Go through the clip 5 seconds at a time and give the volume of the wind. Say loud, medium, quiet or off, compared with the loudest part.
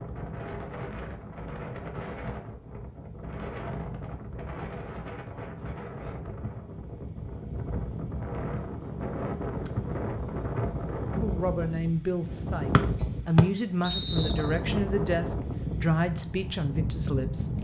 medium, loud, loud, loud.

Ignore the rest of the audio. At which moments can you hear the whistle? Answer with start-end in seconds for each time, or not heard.
12.8-14.5.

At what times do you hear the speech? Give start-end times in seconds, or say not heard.
11.2-17.5.